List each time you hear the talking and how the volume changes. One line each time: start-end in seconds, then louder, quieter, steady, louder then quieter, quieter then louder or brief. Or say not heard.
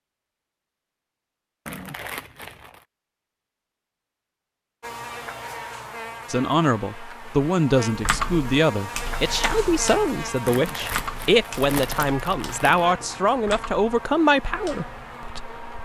6.3-15.8 steady.